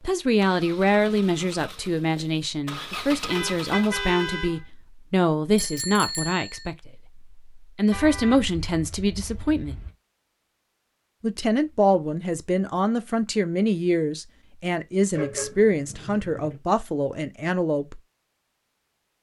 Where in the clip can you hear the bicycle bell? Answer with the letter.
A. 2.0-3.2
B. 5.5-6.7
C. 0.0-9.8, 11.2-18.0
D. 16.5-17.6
B.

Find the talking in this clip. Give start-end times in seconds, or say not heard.
0.0-9.8, 11.2-18.0.